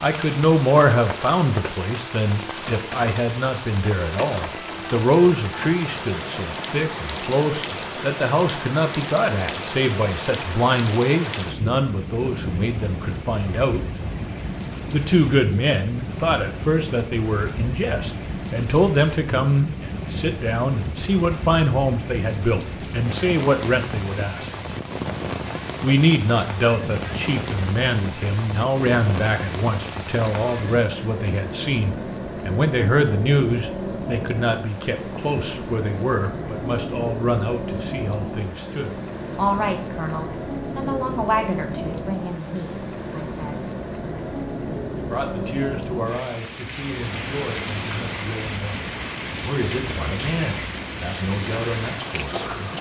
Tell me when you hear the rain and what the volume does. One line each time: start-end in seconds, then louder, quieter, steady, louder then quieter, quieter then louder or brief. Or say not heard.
0.0-52.7 steady.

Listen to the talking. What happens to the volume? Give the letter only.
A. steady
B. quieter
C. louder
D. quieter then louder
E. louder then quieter
B.